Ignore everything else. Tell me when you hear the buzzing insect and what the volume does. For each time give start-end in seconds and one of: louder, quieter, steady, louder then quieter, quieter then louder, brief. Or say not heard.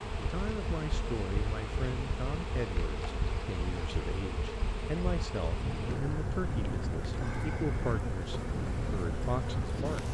0.0-10.0 steady.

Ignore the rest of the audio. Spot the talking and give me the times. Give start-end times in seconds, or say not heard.
0.0-10.0.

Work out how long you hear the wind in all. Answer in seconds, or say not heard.
10 s.